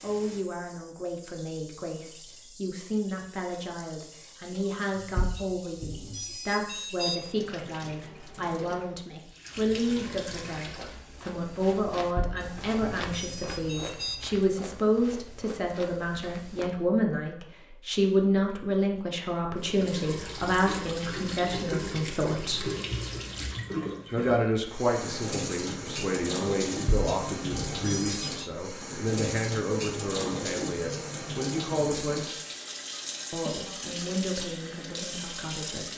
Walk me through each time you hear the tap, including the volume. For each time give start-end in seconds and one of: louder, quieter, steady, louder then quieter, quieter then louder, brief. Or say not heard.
0.0-11.0 louder
19.6-35.9 steady.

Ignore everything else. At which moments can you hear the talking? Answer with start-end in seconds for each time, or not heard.
0.0-22.7, 24.1-32.4, 33.3-35.9.